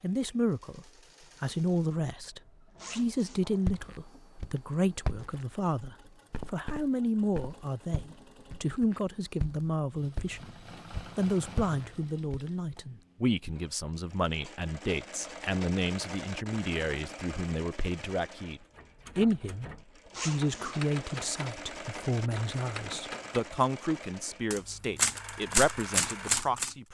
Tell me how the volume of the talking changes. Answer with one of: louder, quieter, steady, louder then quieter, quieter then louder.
steady.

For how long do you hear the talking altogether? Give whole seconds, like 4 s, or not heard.
26 s.